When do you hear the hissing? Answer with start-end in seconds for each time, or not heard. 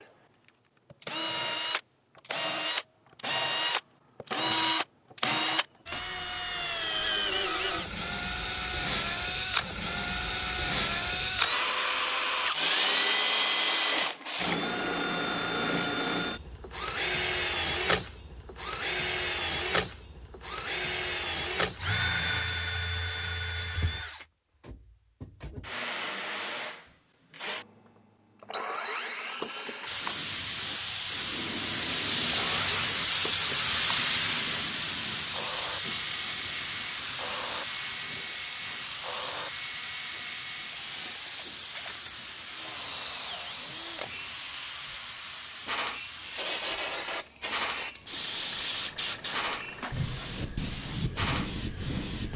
29.9-52.3.